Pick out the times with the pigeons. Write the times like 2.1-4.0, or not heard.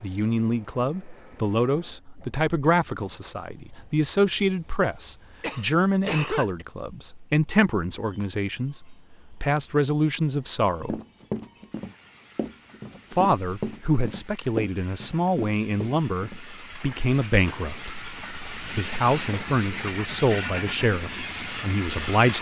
not heard.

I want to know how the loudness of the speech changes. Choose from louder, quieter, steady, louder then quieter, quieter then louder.
steady.